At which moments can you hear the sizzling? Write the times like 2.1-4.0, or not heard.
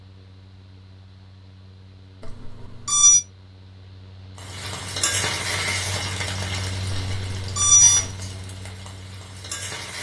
4.5-9.9.